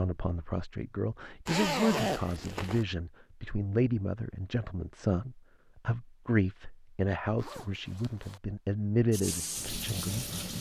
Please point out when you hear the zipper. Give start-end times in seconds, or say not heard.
1.4-2.9, 7.3-8.4.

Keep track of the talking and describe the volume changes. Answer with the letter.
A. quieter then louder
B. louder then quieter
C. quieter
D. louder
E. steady
E.